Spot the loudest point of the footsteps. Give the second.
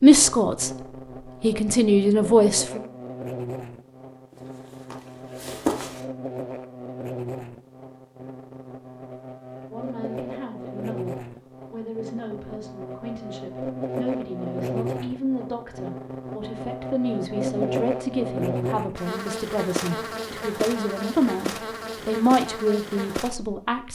6 s.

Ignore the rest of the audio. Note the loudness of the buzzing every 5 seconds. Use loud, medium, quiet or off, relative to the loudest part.
medium, medium, loud, loud, loud.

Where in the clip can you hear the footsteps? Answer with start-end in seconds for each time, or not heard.
4.3-6.0.